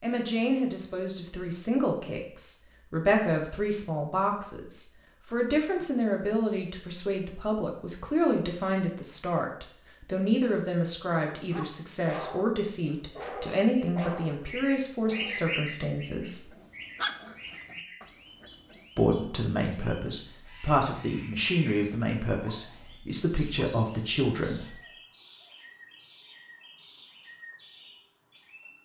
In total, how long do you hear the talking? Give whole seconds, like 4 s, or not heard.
22 s.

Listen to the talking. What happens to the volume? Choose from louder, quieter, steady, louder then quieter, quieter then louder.
steady.